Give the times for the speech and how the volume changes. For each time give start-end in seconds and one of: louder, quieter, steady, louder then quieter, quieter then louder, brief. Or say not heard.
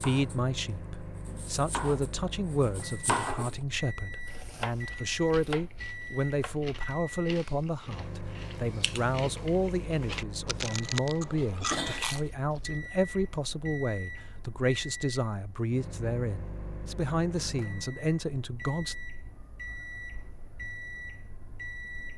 0.0-18.9 steady.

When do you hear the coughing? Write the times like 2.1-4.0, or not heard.
11.3-12.2.